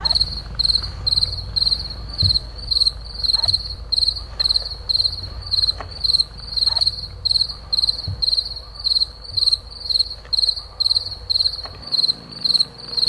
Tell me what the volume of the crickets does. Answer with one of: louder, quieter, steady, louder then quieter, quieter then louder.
steady.